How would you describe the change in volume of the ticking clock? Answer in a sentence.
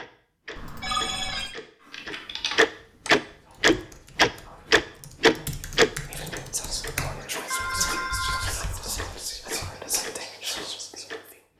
The volume of the ticking clock goes up, then down.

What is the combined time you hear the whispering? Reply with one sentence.
You can hear the whispering for 8 seconds altogether.